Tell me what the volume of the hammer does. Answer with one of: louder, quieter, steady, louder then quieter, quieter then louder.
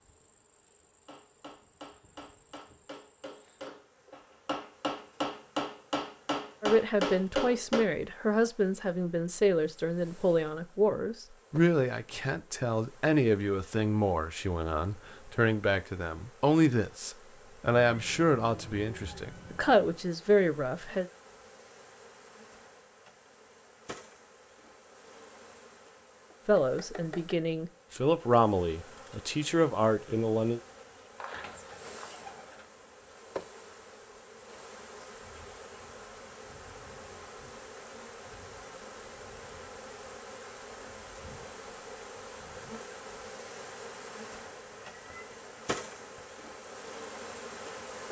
louder.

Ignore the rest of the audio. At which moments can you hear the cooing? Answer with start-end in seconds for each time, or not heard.
31.1-32.6.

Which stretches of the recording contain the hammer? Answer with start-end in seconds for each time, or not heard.
1.1-7.8.